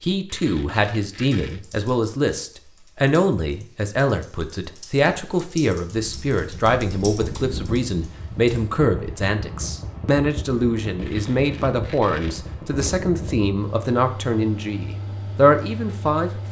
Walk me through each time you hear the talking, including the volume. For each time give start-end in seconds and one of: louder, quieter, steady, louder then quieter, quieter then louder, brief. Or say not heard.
0.0-16.4 steady.